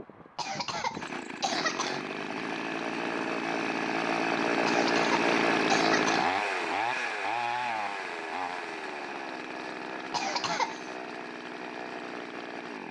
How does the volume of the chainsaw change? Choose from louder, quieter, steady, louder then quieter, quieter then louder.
louder then quieter.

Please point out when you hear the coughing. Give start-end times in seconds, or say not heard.
0.3-2.0, 4.7-6.3, 10.1-10.9.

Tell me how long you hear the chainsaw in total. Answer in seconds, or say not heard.
13 s.